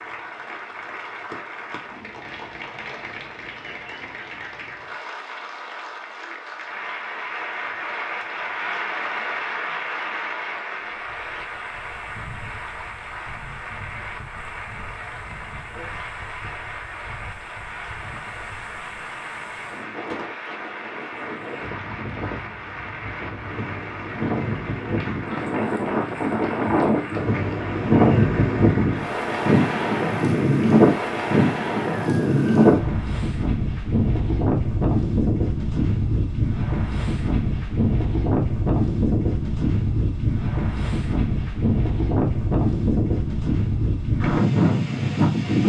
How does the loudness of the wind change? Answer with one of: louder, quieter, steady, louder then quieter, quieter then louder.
louder.